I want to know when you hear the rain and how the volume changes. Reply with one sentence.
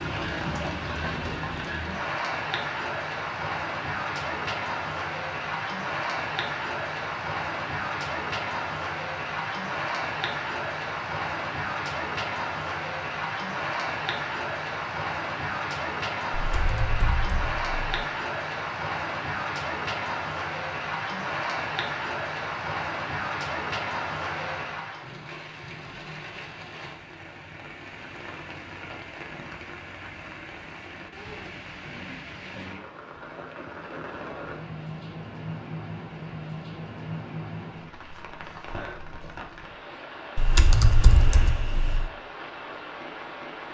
You can hear the rain from 0.0 to 43.6 s, getting quieter.